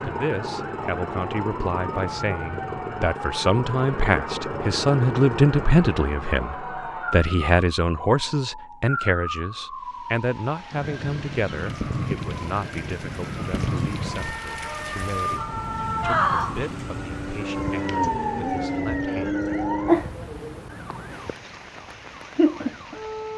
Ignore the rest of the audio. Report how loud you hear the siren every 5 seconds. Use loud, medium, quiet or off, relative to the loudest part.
medium, medium, medium, loud, medium.